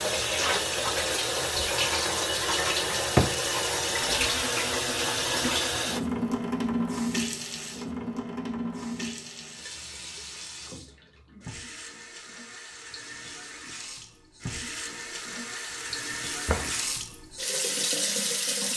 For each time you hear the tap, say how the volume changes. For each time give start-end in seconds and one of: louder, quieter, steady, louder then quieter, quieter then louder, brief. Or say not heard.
0.0-18.7 quieter then louder.